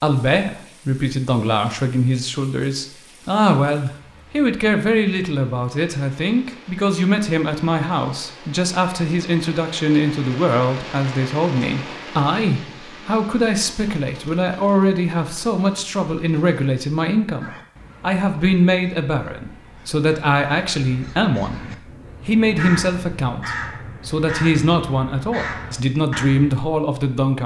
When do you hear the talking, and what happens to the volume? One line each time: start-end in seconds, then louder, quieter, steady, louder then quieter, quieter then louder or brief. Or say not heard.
0.0-27.4 steady.